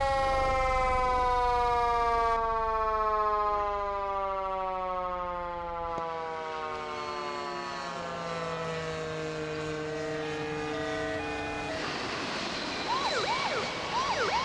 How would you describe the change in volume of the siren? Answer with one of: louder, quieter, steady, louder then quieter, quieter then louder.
quieter then louder.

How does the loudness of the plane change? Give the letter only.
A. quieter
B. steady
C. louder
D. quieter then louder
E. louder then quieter
D.